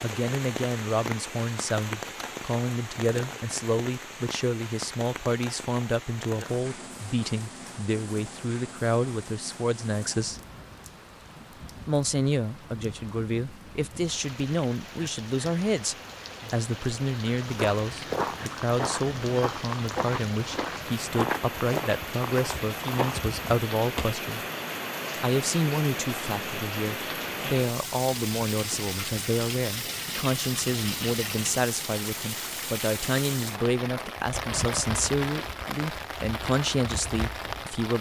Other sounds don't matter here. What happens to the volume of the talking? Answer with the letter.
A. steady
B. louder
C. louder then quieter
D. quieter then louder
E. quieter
A.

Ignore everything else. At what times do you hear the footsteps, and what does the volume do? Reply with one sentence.
The footsteps can be heard from 17.4 to 24.1 s, at a steady volume.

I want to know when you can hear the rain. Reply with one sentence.
The rain can be heard from 0.0 to 37.9 s.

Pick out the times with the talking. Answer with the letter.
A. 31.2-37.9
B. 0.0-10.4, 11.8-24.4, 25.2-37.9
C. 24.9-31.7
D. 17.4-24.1
B.